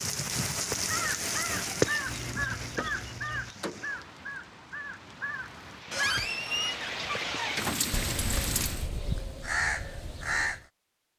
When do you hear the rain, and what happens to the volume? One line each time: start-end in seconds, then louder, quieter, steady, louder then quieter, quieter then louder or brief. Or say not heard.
0.0-8.9 quieter then louder.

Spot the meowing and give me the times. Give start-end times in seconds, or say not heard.
2.0-3.5.